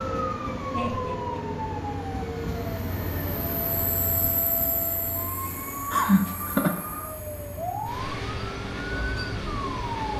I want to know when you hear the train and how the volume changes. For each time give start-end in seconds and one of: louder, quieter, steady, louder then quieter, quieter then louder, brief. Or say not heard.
0.0-10.1 quieter then louder.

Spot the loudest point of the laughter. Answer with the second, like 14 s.
6 s.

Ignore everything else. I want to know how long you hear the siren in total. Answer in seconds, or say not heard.
10 s.